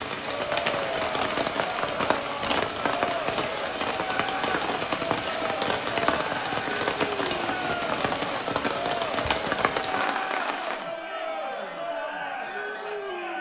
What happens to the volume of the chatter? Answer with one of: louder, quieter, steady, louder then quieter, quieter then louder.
steady.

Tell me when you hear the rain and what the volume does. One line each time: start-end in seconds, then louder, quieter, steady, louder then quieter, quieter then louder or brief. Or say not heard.
0.0-10.9 steady.